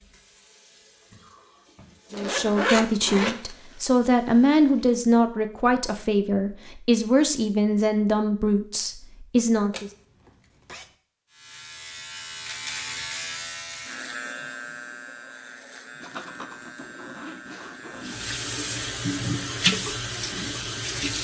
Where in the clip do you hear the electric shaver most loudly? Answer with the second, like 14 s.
13 s.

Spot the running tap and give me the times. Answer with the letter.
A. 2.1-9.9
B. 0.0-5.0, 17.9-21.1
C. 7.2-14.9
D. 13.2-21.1
B.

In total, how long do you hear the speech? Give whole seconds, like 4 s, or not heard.
8 s.